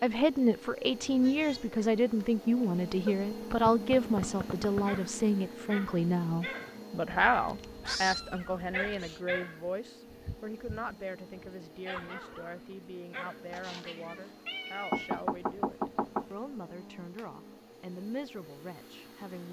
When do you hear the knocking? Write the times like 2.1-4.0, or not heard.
3.0-5.0, 14.9-16.3.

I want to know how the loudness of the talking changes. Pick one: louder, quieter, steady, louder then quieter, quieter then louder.
quieter.